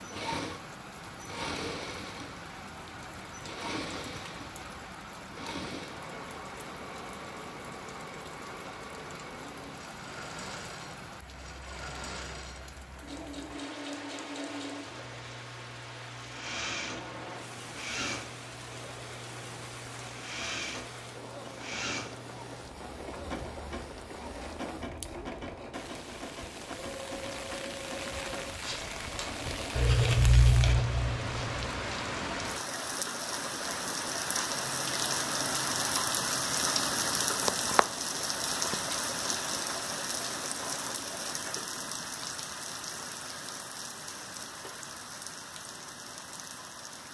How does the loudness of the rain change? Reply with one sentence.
The loudness of the rain goes up.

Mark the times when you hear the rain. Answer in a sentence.
You can hear the rain from 0.0 to 47.1 s.